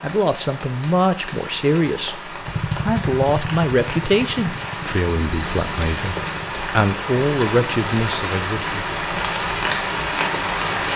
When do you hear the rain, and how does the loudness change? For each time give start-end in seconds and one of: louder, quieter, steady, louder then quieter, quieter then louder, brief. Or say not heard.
0.0-10.9 louder.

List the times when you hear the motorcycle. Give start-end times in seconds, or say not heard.
2.5-6.6.